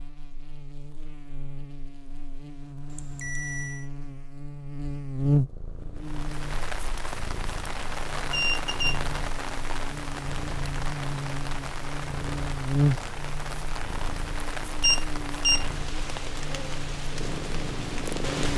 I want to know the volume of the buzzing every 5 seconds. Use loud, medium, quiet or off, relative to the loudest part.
medium, loud, loud, medium.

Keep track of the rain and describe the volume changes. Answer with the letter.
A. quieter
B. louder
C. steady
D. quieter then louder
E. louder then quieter
C.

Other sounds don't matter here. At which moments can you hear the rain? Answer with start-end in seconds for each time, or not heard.
6.0-18.5.